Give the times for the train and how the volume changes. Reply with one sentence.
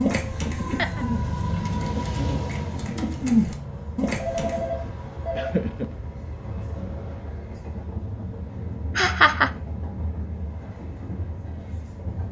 The train can be heard from 0.0 to 12.2 s, getting quieter.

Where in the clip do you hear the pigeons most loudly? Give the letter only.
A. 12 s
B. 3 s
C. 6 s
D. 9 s
B.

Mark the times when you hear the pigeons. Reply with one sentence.
You can hear the pigeons from 0.0 to 4.7 s.